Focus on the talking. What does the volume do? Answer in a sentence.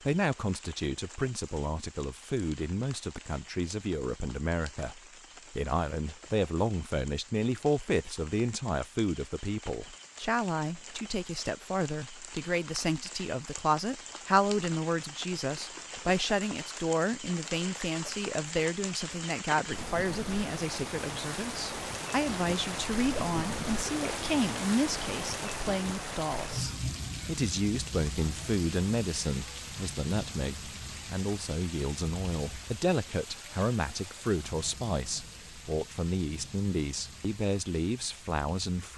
The volume of the talking stays about the same.